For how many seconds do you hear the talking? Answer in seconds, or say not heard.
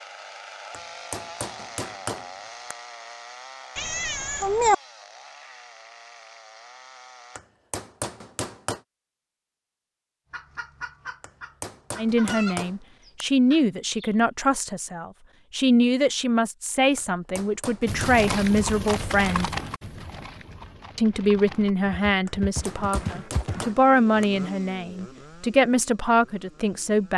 14 s.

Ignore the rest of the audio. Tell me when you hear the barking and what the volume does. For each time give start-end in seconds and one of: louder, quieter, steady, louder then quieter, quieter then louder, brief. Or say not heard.
not heard.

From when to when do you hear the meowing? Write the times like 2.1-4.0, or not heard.
3.8-4.8.